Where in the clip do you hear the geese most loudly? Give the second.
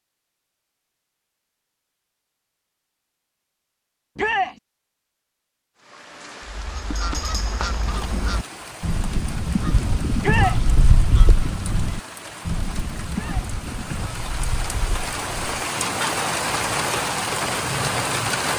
10 s.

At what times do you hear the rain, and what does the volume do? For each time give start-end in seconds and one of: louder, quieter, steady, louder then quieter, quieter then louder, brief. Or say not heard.
5.8-18.5 louder.